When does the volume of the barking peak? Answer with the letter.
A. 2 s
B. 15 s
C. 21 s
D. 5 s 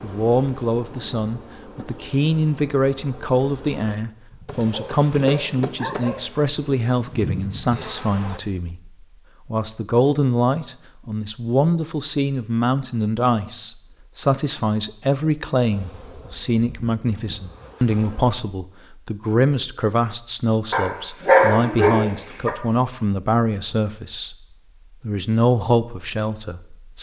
C.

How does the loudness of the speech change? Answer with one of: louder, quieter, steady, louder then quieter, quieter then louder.
steady.